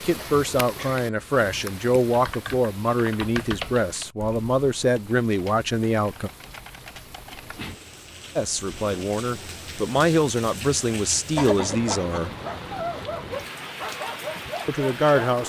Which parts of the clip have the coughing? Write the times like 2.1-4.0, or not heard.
0.1-1.1, 11.3-12.5.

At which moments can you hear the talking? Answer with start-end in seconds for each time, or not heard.
0.0-6.3, 8.3-12.3, 14.7-15.4.